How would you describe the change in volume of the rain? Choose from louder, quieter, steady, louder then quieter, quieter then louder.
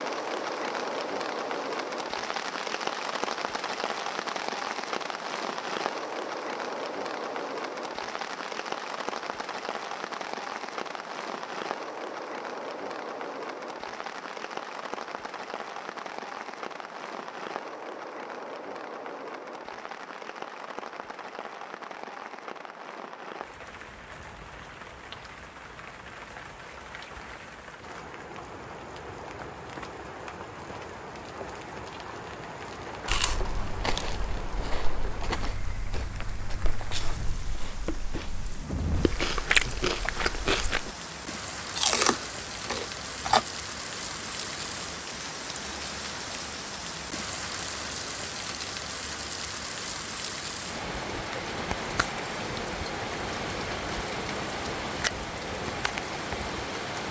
quieter then louder.